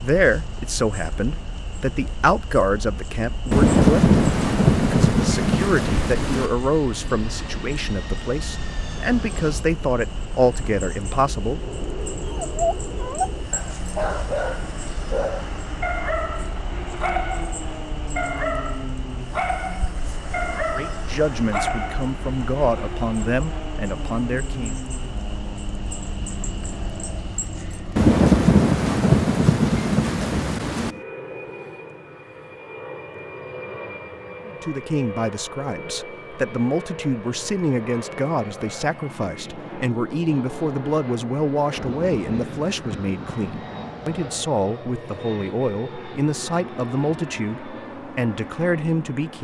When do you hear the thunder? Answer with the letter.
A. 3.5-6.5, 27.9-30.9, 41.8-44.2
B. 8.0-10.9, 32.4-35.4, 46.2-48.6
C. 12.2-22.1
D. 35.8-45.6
A.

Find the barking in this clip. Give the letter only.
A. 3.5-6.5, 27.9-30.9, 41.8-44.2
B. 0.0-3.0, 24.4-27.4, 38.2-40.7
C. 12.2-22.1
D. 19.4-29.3
C.